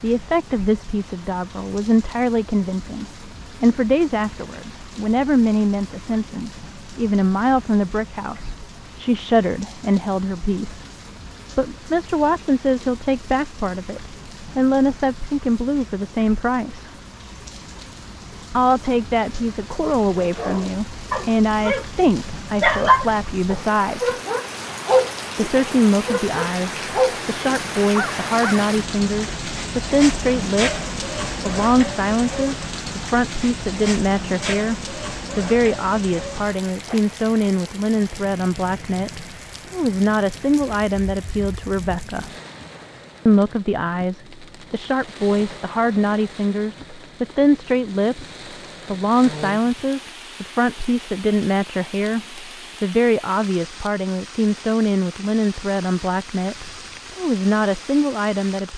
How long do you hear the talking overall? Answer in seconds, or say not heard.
54 s.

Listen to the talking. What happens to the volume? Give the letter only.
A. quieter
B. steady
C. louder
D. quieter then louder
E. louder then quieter
B.